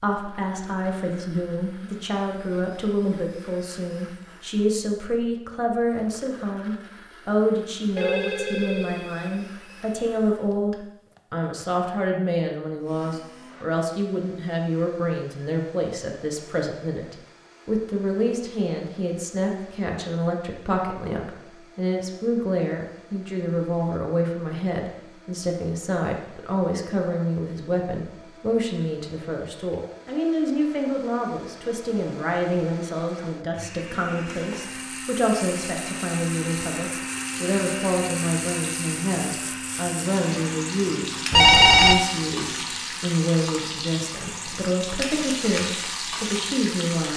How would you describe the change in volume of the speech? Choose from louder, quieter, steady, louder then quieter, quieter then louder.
steady.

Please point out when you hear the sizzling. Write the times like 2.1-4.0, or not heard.
34.2-47.1.